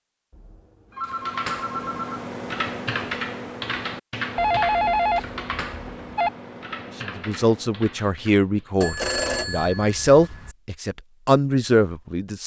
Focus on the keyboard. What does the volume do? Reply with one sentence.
The volume of the keyboard goes down.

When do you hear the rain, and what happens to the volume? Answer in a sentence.
You can't hear the rain here.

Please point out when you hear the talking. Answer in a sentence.
The talking can be heard from 7.0 to 12.4 s.